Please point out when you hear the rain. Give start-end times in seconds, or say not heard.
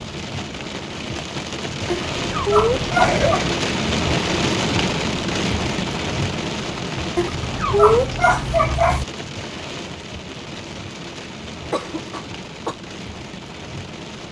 0.0-14.2.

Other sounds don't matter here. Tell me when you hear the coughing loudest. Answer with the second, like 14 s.
3 s.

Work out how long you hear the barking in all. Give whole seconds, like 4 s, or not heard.
3 s.